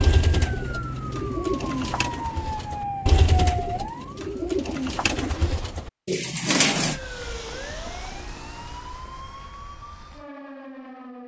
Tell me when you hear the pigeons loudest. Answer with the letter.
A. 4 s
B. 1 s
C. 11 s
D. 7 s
D.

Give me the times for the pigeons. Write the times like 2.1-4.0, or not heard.
0.0-7.0.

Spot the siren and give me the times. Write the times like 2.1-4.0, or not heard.
0.0-4.5, 6.8-11.2.